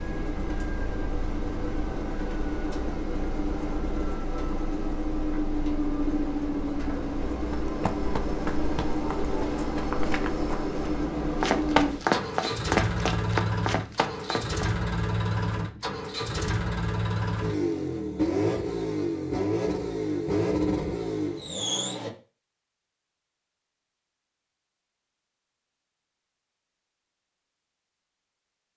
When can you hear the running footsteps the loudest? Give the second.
12 s.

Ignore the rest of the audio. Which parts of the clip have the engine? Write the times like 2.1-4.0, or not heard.
0.0-22.1.